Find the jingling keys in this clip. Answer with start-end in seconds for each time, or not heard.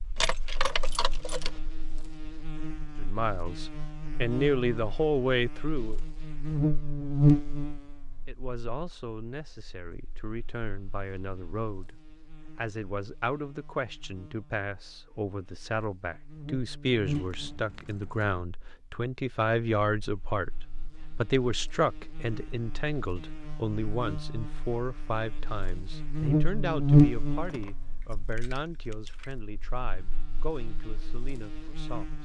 0.1-1.6, 17.1-18.4, 27.4-29.4.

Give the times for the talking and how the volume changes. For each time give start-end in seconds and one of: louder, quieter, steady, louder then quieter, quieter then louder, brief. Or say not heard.
3.0-6.0 brief
8.2-32.2 louder then quieter.